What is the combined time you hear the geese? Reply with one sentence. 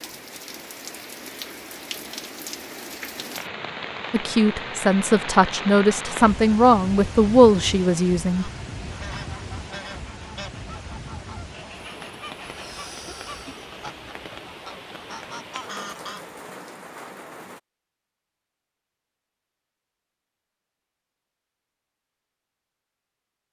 The geese can be heard for 8 seconds in total.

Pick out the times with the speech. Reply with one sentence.
The speech can be heard from 4.1 to 8.5 s.